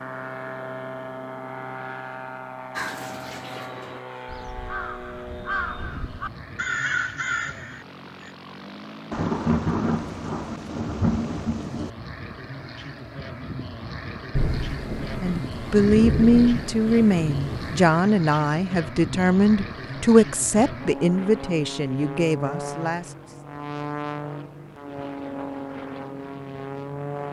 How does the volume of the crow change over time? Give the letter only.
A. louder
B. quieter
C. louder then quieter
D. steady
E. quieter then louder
A.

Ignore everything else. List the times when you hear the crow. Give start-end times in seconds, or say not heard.
2.8-8.3.